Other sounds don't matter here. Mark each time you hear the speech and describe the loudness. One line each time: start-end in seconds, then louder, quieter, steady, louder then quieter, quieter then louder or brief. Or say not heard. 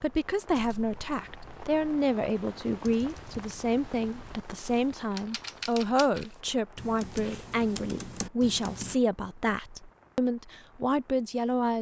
0.0-11.7 steady.